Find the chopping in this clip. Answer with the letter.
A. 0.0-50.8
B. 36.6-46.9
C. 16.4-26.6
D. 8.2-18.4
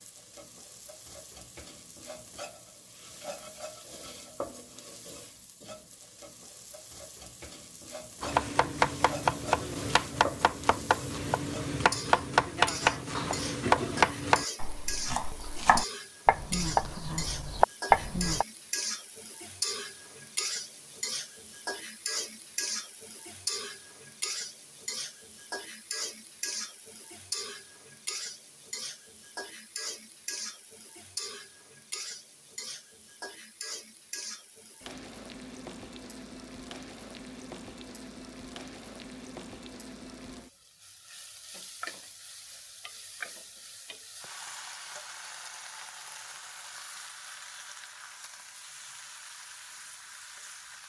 D.